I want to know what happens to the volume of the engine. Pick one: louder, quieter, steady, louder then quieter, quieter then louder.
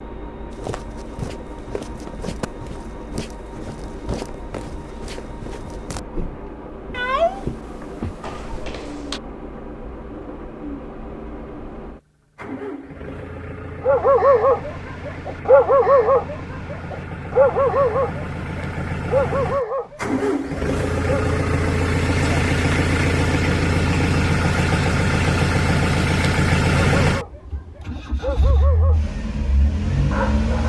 louder.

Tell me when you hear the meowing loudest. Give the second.
7 s.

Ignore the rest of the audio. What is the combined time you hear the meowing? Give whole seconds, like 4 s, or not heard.
2 s.